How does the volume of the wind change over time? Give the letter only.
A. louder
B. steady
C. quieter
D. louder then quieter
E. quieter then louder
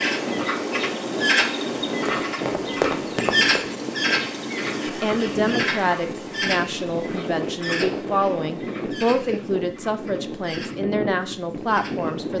B.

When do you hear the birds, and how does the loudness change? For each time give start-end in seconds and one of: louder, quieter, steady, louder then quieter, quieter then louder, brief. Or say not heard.
0.0-12.3 quieter.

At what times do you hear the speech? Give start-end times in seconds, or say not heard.
5.0-12.3.